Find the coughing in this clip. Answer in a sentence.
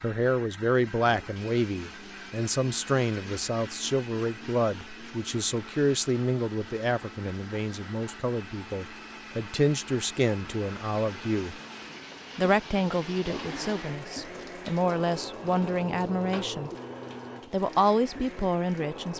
You can't hear the coughing here.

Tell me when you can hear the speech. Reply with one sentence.
You can hear the speech from 0.0 to 11.6 s, from 12.3 to 16.7 s and from 17.5 to 19.1 s.